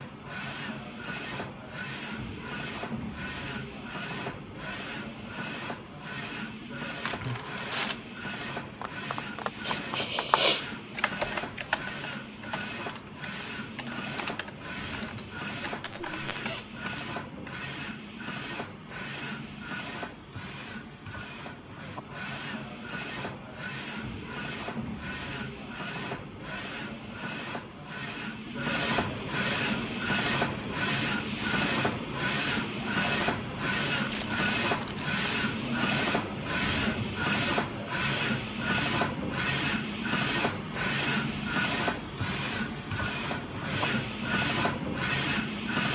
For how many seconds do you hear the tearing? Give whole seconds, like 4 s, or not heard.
2 s.